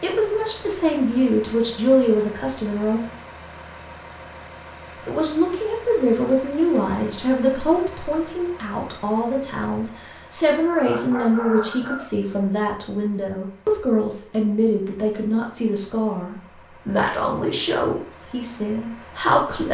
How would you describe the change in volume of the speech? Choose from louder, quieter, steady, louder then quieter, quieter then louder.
steady.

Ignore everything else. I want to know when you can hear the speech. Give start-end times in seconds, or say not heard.
0.0-3.0, 5.0-19.6.